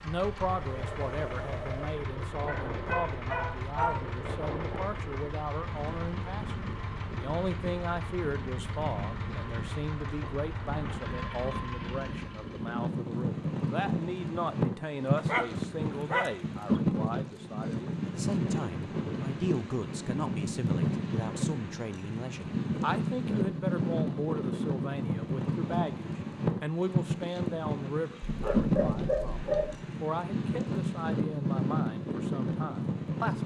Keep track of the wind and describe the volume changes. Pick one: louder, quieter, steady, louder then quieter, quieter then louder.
louder.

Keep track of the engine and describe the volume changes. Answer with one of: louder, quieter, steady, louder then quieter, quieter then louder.
steady.